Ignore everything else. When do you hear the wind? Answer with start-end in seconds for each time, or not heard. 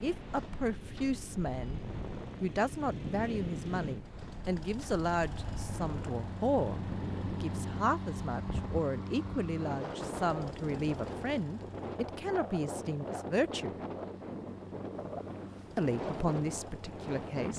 0.0-17.5.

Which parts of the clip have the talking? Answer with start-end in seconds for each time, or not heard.
0.0-1.8, 2.4-6.8, 7.4-13.8, 15.8-17.5.